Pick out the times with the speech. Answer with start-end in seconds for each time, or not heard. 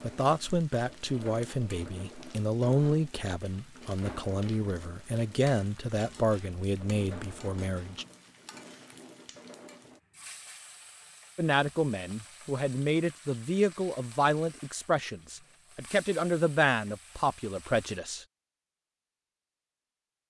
0.0-8.1, 11.3-18.2.